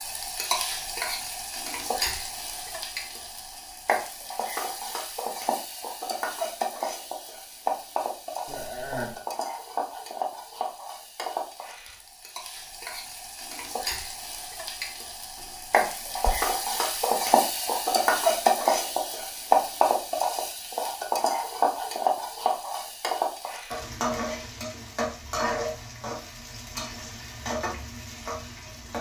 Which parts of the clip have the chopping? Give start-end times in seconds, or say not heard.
not heard.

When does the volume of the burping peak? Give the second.
9 s.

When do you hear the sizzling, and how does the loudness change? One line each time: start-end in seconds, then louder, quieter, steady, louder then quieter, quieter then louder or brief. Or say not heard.
0.0-28.9 louder then quieter.